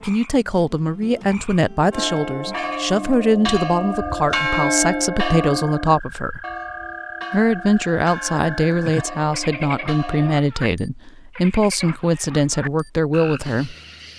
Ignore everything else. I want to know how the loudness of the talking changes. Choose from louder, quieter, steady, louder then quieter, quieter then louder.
steady.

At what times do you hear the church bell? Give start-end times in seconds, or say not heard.
1.9-10.4.